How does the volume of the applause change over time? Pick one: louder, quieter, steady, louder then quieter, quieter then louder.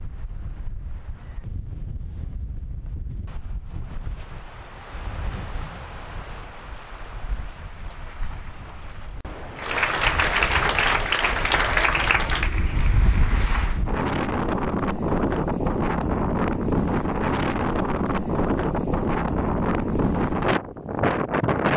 quieter.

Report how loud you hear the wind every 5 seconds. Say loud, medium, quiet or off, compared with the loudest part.
quiet, quiet, medium, loud, loud.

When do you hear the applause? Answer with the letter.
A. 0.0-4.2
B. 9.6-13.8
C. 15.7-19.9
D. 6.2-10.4
B.